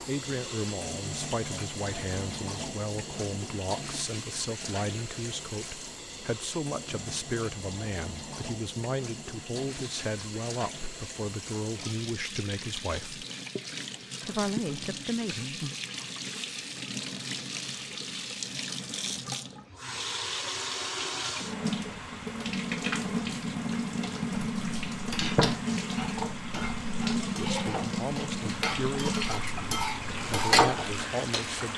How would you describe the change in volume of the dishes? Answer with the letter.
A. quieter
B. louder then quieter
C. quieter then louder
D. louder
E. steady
C.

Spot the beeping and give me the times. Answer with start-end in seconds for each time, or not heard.
not heard.